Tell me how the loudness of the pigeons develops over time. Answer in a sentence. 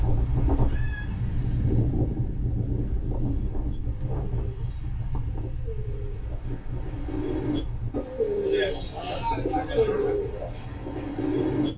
The volume of the pigeons goes up.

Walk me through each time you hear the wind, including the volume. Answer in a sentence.
You can hear the wind from 0.0 to 11.7 s, getting quieter.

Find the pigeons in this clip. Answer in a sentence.
The pigeons can be heard from 3.2 to 11.7 s.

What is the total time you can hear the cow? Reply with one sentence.
You can hear the cow for 2 seconds altogether.